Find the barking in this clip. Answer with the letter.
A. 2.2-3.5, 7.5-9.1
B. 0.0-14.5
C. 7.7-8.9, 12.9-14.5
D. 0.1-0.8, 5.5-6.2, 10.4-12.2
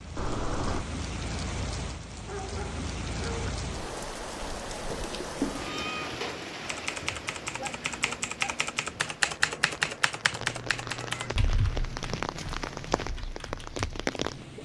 A.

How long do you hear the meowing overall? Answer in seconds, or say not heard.
3 s.